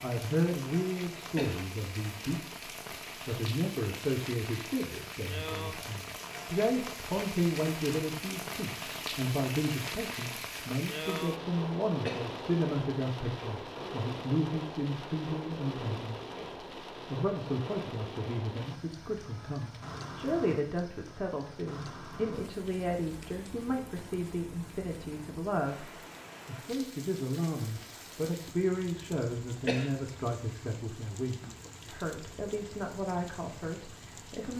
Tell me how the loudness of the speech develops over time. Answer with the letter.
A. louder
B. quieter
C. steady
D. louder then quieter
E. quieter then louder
C.